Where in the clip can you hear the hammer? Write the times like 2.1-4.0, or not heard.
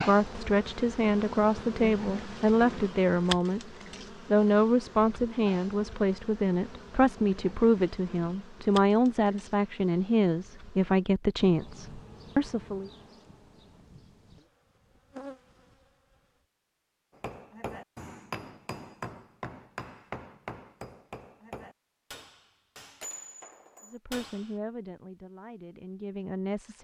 17.1-24.6.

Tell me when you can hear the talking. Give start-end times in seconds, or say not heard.
0.0-3.7, 4.3-12.9, 23.9-26.7.